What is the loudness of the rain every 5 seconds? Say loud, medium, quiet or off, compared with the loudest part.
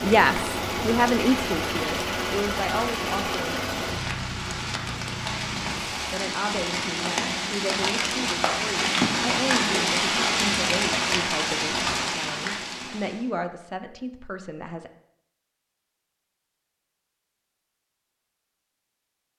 medium, loud, loud, off.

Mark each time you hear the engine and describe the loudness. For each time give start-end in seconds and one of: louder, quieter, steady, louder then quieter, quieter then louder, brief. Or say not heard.
0.0-6.0 quieter.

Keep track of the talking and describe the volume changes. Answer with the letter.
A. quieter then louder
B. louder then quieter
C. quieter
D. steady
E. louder
C.